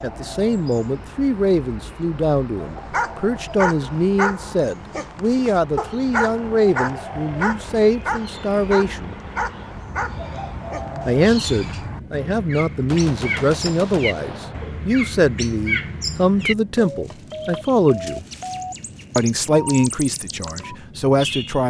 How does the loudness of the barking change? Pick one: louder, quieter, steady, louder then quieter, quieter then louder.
quieter.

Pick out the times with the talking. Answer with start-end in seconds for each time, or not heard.
0.0-9.2, 11.1-18.2, 19.1-21.6.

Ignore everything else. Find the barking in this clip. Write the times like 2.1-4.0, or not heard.
2.5-11.9.